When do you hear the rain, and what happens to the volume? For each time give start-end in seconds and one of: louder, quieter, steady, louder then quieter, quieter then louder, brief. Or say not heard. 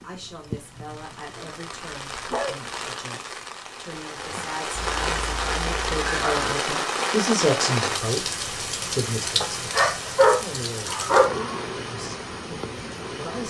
0.0-13.4 louder then quieter.